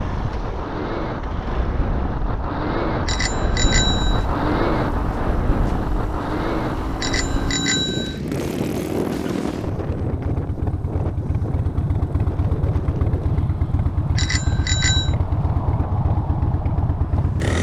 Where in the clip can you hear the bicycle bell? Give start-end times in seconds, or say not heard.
3.0-4.2, 7.0-8.2, 14.2-15.2.